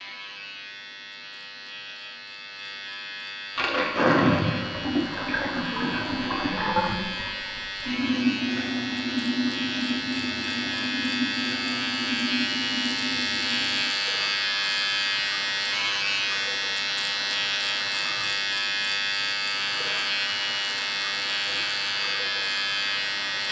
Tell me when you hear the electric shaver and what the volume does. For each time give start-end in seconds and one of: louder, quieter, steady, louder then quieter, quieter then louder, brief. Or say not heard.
0.0-23.4 louder.